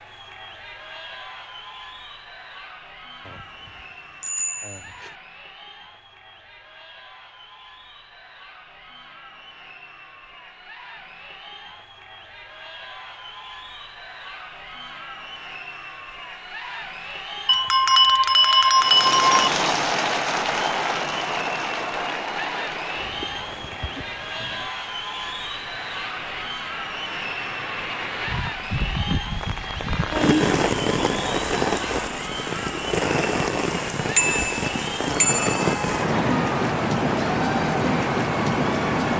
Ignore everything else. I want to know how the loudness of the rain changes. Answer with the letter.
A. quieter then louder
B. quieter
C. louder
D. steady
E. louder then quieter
A.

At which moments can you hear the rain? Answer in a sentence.
You can hear the rain from 18.8 to 39.1 s.